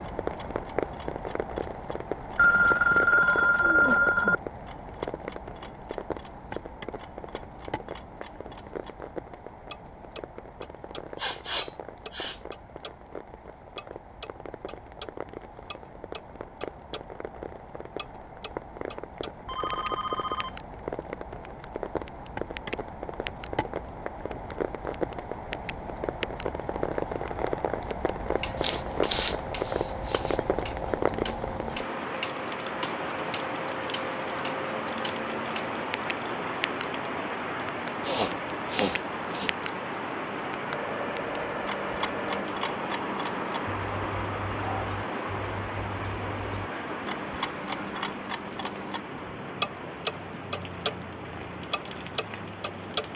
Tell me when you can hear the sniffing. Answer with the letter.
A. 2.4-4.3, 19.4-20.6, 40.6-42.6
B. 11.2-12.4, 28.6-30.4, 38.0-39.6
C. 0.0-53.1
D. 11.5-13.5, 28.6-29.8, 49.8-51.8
B.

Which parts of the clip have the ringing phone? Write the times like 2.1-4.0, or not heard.
2.4-4.3, 19.4-20.6, 40.6-42.6.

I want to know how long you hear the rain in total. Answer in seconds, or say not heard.
53 s.